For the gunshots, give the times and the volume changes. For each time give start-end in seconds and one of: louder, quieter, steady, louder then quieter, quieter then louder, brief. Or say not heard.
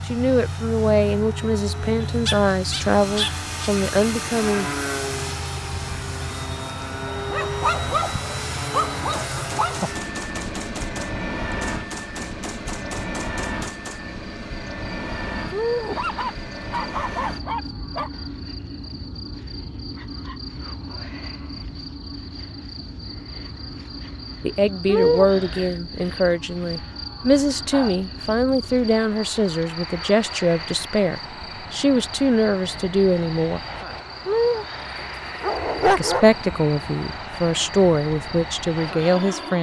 9.1-14.0 steady.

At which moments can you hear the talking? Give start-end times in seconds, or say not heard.
0.1-4.7, 24.4-33.6, 36.0-39.5.